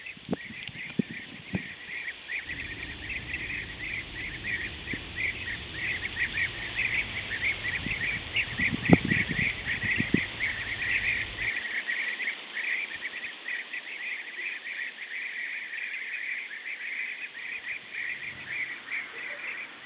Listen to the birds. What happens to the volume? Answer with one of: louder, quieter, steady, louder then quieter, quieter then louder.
louder then quieter.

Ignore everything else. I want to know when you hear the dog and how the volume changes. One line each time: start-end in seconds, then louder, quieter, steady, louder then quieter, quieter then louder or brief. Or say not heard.
not heard.